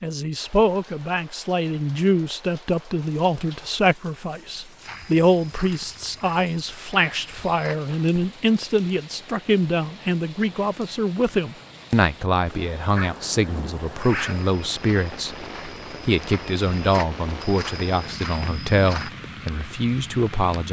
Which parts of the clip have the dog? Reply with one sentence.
You can hear the dog from 12.9 to 14.4 s.